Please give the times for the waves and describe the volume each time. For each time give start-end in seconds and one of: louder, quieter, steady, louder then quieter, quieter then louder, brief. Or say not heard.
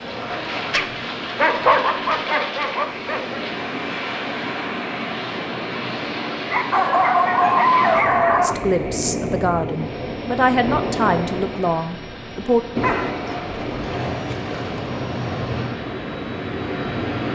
0.0-17.3 steady.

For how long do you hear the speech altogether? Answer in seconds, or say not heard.
4 s.